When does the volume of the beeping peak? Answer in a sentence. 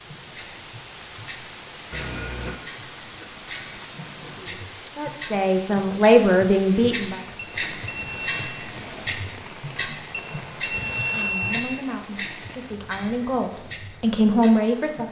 The volume of the beeping peaks at 11 seconds.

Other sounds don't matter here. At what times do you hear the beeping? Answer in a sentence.
You can hear the beeping from 1.9 to 2.6 s, from 7.3 to 8.6 s and from 10.1 to 11.6 s.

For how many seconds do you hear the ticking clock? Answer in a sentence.
The ticking clock can be heard for 15 seconds in total.